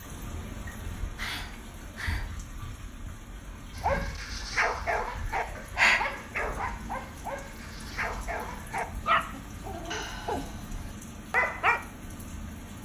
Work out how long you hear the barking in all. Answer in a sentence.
The barking can be heard for 8 seconds in total.